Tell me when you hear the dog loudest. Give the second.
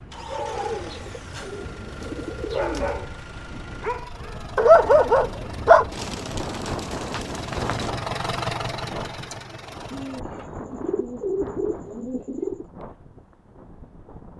5 s.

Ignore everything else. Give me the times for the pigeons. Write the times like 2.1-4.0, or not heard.
0.3-3.1, 5.9-7.9, 9.9-12.7.